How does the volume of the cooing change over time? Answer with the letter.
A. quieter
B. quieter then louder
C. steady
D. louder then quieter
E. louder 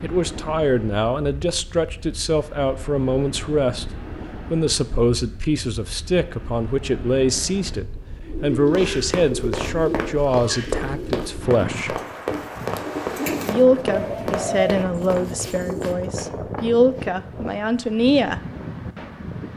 B.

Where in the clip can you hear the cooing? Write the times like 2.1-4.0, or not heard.
8.2-16.0.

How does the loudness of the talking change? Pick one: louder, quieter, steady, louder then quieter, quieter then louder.
steady.